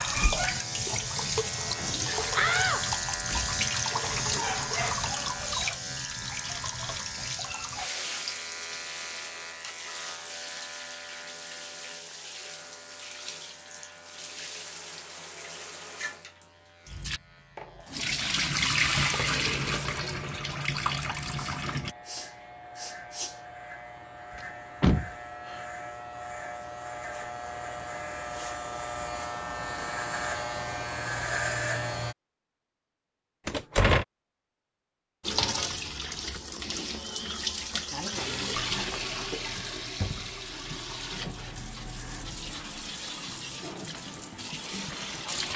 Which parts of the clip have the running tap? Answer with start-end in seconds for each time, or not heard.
0.0-21.9, 35.2-45.5.